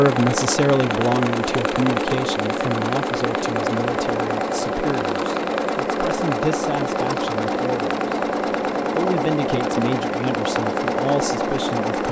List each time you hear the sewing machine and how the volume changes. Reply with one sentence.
You can hear the sewing machine from 0.0 to 12.0 s, at a steady volume.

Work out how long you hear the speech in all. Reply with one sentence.
You can hear the speech for 11 seconds altogether.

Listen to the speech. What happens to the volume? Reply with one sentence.
The loudness of the speech goes down.